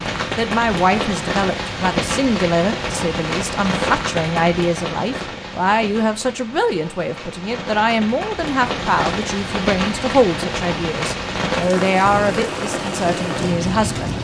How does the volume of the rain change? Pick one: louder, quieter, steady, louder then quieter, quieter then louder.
quieter then louder.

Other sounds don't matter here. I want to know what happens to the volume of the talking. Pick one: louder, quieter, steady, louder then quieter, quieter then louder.
steady.